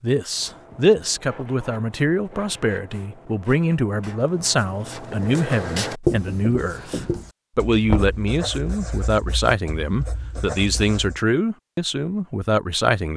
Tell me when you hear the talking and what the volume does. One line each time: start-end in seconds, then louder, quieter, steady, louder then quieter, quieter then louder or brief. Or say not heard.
0.0-13.1 steady.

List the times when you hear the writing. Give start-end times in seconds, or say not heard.
0.2-11.2.